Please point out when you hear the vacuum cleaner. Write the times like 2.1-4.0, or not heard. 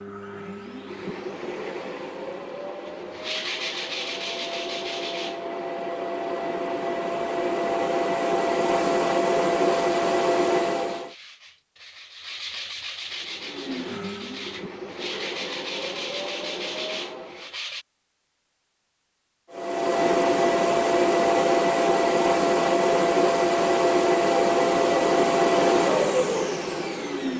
0.0-11.2, 13.1-17.6, 19.5-27.3.